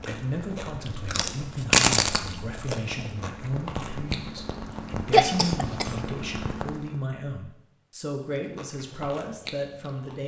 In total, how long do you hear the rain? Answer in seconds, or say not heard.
7 s.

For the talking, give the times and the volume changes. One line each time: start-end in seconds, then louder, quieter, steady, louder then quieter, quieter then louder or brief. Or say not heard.
0.1-10.2 steady.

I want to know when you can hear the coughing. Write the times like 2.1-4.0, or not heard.
5.1-5.9.